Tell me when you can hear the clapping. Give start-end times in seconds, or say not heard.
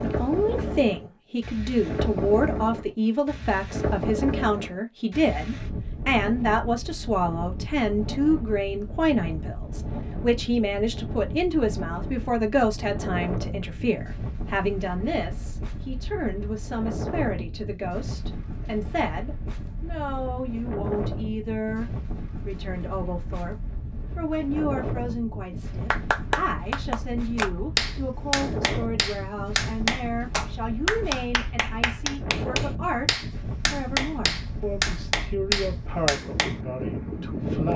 25.9-36.6.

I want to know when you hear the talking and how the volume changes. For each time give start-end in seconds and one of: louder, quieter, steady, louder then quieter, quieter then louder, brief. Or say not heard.
0.0-37.7 quieter.